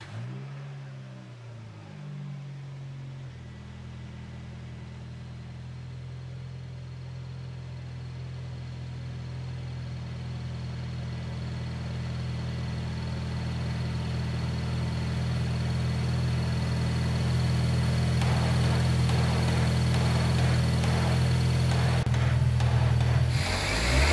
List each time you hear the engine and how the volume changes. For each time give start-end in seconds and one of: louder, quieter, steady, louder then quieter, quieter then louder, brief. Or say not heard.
0.0-24.0 louder.